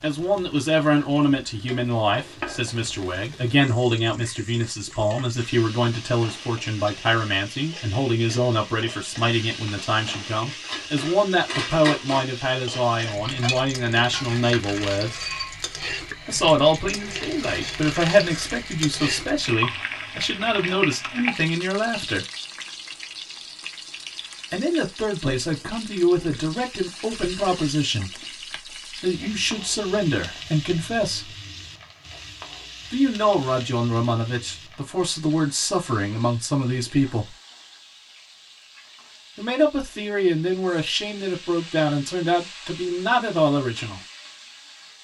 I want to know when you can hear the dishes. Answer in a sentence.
The dishes can be heard from 10.6 to 15.6 s.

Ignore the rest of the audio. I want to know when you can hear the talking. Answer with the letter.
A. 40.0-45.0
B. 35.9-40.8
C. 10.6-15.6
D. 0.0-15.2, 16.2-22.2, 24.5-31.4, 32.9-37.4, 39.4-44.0
D.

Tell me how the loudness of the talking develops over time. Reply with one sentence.
The volume of the talking stays about the same.